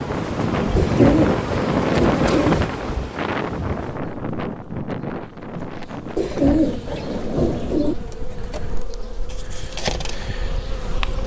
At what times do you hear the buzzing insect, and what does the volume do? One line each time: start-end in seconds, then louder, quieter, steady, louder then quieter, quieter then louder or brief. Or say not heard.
0.0-11.2 quieter then louder.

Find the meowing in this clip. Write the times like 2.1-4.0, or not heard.
not heard.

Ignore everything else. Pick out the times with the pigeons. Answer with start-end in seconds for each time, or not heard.
0.8-2.5, 6.2-8.0.